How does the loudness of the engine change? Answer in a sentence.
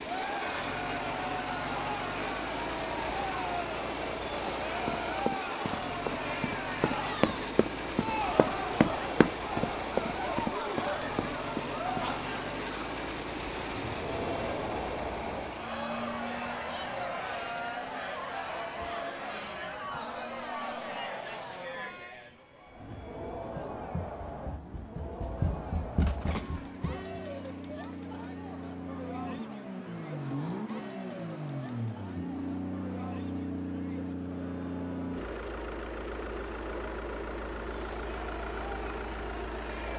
The volume of the engine goes down, then up.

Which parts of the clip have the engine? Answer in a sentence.
You can hear the engine from 0.0 to 39.9 s.